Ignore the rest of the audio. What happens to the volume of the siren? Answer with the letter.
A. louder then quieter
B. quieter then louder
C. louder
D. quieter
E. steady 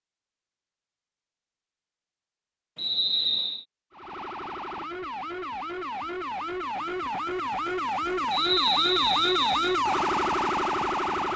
C.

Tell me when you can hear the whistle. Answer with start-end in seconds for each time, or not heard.
2.8-3.6, 8.3-9.8.